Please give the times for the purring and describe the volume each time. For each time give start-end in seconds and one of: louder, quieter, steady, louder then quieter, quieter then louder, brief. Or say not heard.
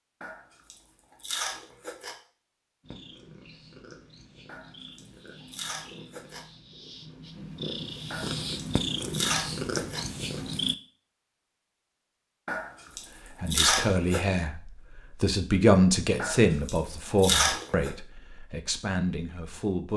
2.8-10.8 louder.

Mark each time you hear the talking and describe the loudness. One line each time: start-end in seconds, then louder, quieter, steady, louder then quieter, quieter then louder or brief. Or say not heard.
13.2-19.9 louder then quieter.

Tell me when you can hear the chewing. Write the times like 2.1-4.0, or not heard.
0.2-2.1, 4.5-6.5, 8.1-10.1, 12.4-14.2, 16.1-17.9.